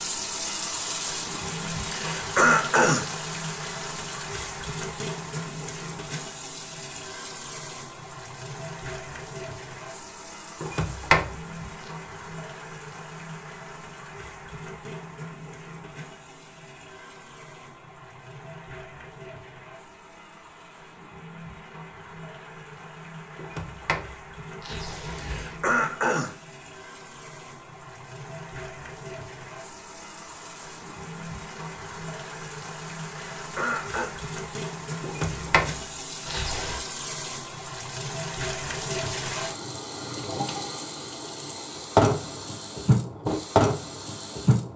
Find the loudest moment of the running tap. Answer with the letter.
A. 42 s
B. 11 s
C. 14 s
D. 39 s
A.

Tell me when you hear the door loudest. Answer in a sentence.
The loudest moment of the door is at 11 seconds.